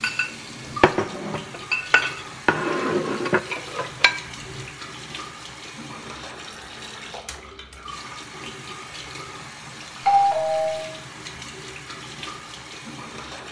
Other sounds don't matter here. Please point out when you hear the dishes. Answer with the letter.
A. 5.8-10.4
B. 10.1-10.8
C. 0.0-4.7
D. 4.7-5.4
C.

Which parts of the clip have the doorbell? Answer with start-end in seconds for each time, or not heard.
10.1-10.8.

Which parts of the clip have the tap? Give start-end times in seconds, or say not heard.
0.0-13.4.